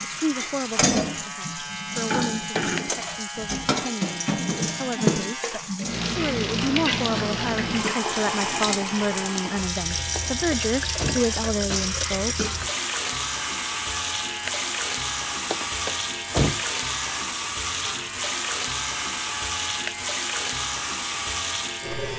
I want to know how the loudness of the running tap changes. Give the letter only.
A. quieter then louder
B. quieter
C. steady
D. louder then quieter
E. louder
C.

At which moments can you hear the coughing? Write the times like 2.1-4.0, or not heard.
7.1-8.1, 11.7-12.6.